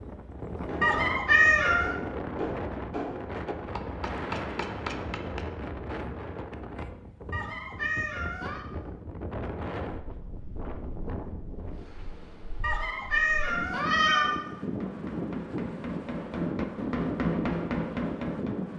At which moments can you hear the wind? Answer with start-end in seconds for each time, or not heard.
0.0-18.7.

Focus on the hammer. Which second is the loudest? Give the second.
17 s.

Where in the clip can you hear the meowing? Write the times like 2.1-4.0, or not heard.
0.8-1.9, 7.3-8.7, 12.6-14.3.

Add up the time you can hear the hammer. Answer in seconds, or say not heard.
10 s.